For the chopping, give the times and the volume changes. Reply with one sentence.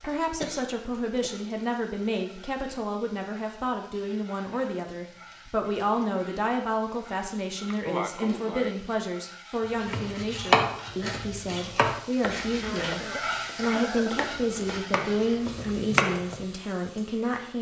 You can hear the chopping from 9.8 to 16.4 s, getting quieter then louder.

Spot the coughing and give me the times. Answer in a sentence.
The coughing can be heard from 0.4 to 1.4 s, from 7.7 to 8.8 s and from 12.6 to 14.3 s.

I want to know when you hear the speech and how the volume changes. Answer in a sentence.
You can hear the speech from 0.0 to 17.5 s, at a steady volume.